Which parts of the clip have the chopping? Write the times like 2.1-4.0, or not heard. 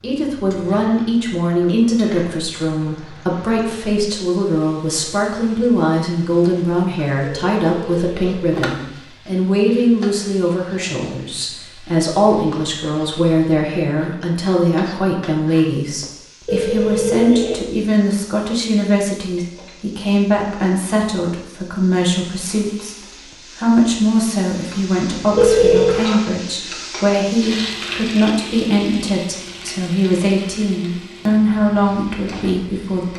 not heard.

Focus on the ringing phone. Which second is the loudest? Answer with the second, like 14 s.
26 s.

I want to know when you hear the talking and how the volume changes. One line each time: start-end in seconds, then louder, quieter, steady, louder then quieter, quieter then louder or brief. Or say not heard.
0.0-22.9 steady
23.6-33.1 steady.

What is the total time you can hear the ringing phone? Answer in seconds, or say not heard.
3 s.